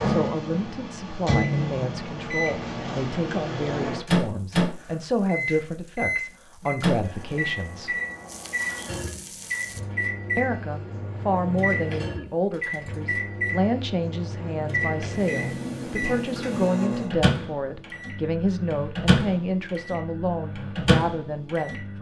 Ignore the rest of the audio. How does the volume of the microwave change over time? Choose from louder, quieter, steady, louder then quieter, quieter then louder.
steady.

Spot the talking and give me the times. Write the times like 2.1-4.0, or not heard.
0.0-8.0, 10.3-21.9.